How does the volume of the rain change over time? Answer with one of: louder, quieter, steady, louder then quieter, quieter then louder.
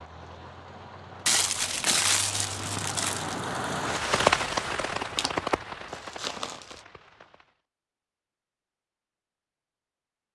louder then quieter.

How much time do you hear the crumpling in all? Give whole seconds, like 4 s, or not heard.
4 s.